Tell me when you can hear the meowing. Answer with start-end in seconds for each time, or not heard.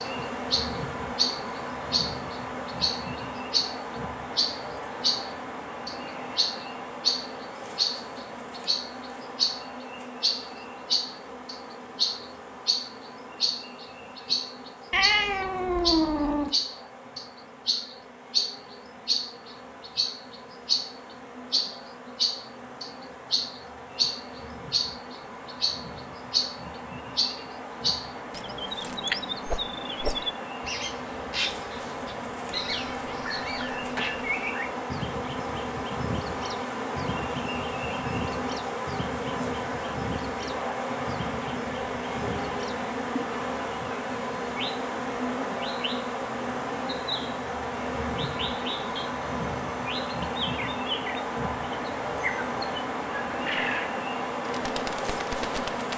14.9-16.5, 32.5-34.2.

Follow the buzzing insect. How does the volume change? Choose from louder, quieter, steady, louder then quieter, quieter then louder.
quieter then louder.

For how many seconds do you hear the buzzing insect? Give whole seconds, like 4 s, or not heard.
56 s.